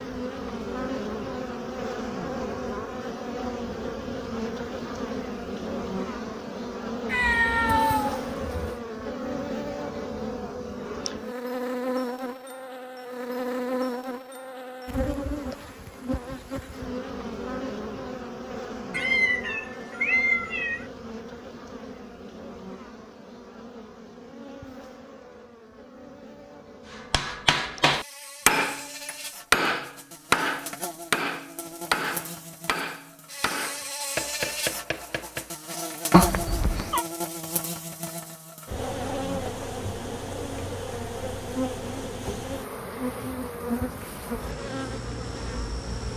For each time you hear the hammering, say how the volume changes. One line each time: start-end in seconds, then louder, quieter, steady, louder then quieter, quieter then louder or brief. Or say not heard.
27.1-35.5 quieter.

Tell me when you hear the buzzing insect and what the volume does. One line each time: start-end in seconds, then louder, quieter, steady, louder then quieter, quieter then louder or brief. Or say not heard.
0.0-46.1 quieter then louder.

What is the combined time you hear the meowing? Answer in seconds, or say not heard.
5 s.